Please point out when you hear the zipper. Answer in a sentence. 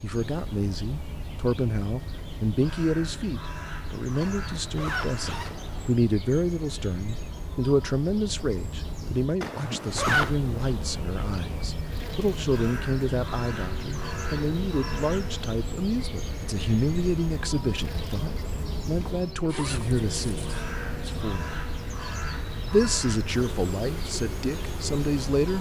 The zipper can be heard from 4.2 to 6.0 s, from 9.4 to 10.3 s and from 19.4 to 20.5 s.